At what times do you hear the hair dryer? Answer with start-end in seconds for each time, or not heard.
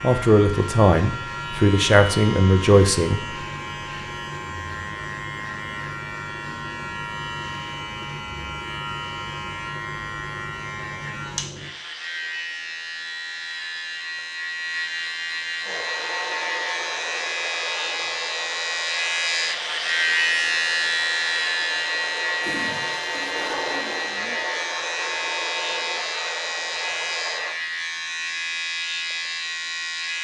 15.6-27.6.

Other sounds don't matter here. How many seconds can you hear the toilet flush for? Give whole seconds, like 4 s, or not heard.
2 s.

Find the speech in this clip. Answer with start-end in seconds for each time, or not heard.
0.0-3.2.